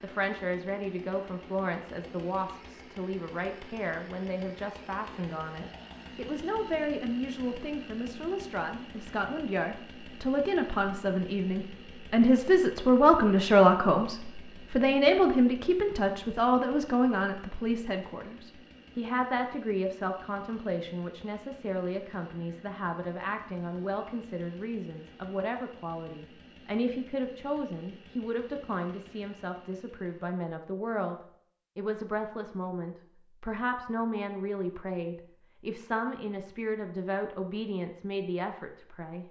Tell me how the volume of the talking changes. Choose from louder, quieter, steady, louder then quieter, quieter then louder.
louder then quieter.